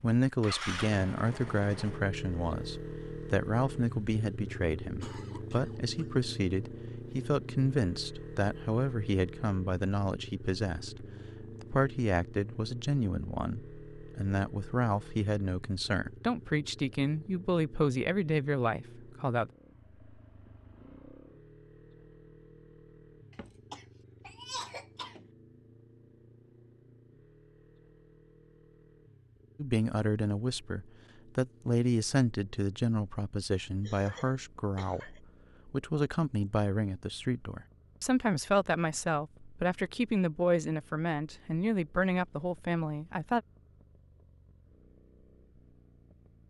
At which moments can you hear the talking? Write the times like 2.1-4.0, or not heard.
0.0-19.5, 29.6-43.4.